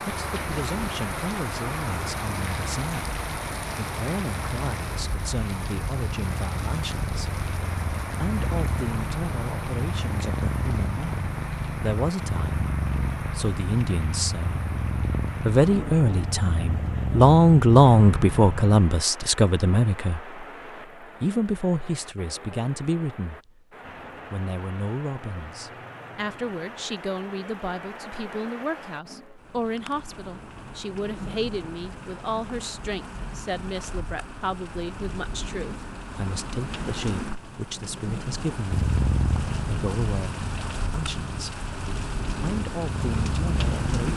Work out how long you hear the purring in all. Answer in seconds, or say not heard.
24 s.